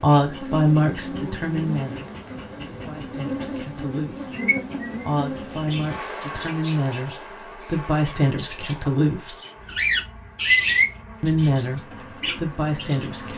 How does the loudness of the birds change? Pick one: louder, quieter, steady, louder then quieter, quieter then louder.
louder then quieter.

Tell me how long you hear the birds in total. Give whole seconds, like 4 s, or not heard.
9 s.